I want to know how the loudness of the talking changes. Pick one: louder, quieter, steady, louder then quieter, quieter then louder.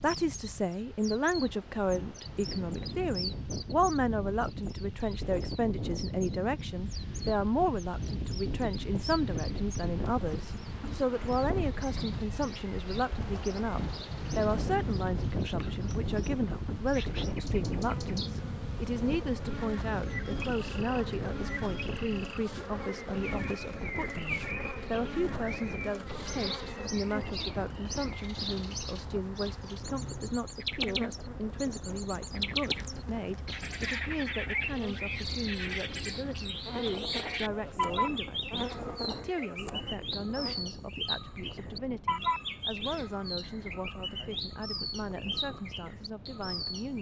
quieter.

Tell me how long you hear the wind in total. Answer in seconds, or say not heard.
47 s.